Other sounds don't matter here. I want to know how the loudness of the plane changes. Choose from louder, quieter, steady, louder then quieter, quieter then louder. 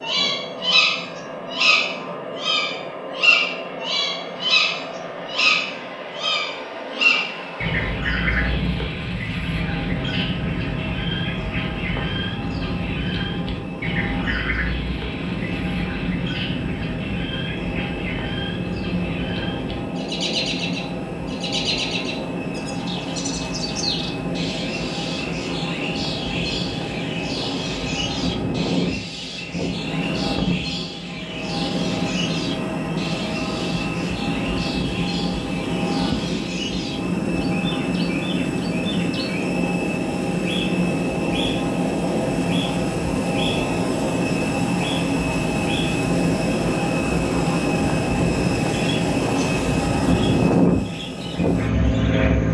louder.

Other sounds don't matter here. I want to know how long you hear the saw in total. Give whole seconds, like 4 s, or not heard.
not heard.